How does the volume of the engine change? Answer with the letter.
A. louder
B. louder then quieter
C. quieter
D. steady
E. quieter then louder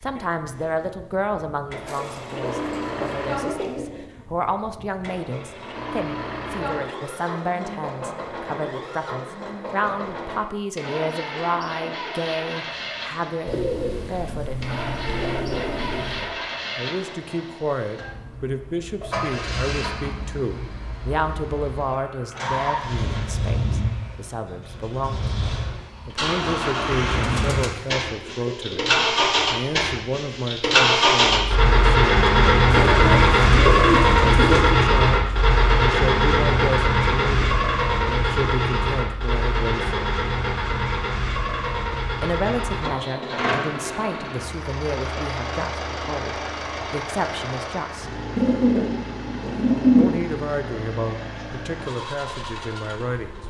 B.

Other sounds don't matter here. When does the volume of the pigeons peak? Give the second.
50 s.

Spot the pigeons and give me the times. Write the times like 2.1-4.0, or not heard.
1.9-4.0, 13.4-16.4, 27.1-28.8, 32.7-34.6, 48.4-50.1.